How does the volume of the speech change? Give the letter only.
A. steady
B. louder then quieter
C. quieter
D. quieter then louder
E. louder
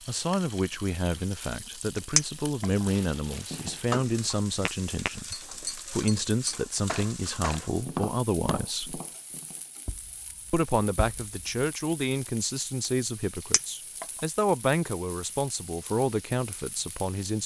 A.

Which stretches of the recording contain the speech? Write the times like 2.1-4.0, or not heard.
0.1-9.0, 10.5-17.4.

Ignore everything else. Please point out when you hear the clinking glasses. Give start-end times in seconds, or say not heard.
2.1-2.6, 13.5-14.1.